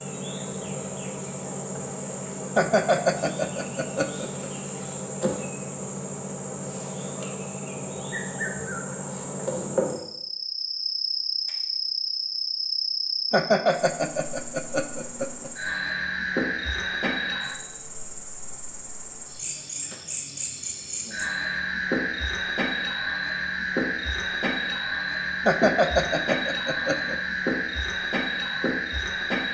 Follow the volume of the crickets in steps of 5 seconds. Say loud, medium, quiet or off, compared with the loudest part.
medium, loud, loud, loud, loud, loud.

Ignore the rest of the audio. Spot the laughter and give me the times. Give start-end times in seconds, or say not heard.
2.5-4.5, 13.3-15.5, 25.4-27.2.